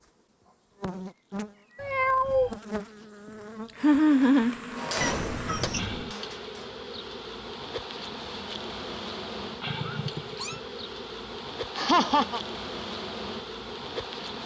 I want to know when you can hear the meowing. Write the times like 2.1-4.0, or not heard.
1.8-2.5, 5.0-6.2, 9.7-10.6.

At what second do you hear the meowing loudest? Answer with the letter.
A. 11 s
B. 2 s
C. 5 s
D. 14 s
B.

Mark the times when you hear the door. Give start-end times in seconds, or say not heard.
not heard.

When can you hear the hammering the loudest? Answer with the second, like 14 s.
5 s.